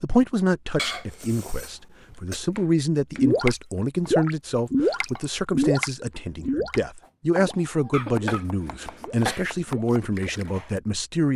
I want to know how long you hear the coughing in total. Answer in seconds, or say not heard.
3 s.